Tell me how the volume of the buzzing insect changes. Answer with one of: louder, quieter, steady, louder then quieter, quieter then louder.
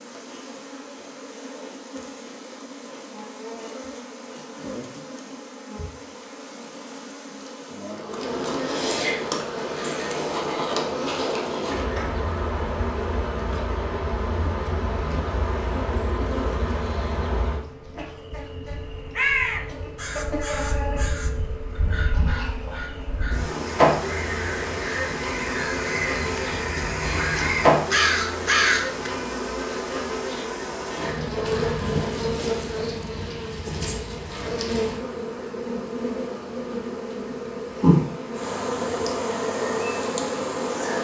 louder.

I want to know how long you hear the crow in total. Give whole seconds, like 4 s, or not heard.
10 s.